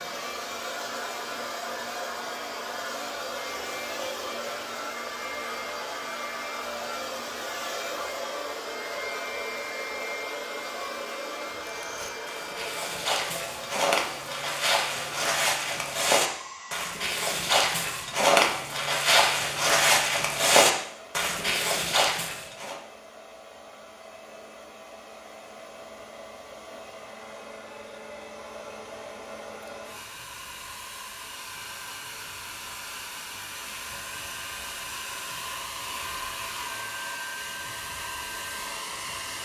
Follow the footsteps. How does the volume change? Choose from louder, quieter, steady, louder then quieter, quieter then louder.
louder.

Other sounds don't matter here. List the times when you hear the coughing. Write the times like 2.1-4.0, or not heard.
not heard.